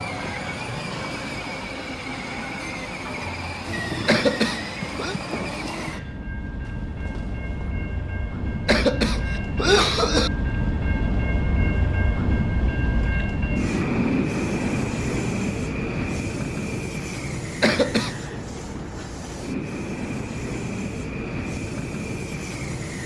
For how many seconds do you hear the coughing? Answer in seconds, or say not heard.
3 s.